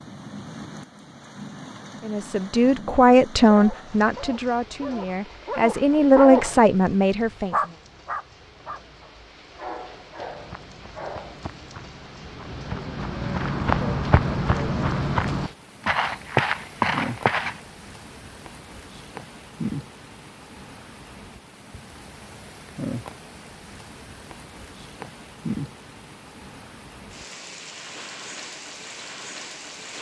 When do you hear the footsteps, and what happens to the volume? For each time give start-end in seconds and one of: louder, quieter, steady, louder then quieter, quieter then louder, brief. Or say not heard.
10.2-17.6 louder.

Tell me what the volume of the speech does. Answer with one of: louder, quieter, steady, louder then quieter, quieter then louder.
quieter then louder.